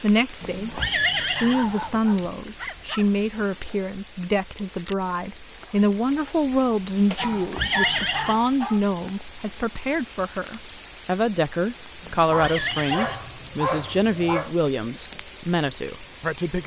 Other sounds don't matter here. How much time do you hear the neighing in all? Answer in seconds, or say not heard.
4 s.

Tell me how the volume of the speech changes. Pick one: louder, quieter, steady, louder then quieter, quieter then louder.
steady.